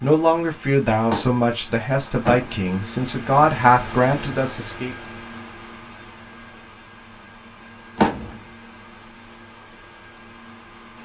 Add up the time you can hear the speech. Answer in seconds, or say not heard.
5 s.